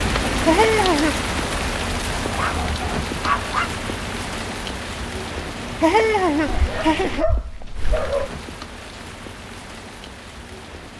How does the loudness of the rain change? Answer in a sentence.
The volume of the rain goes down.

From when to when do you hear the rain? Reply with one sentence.
You can hear the rain from 0.0 to 10.9 s.